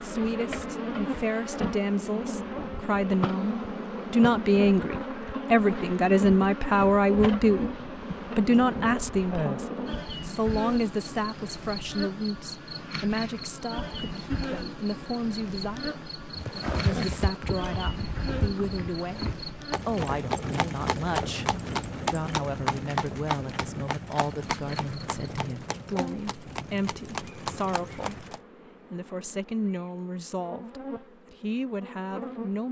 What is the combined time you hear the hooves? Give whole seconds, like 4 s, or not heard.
12 s.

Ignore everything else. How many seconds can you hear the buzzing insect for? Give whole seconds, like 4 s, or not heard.
28 s.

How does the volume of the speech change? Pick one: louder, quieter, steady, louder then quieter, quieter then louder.
quieter.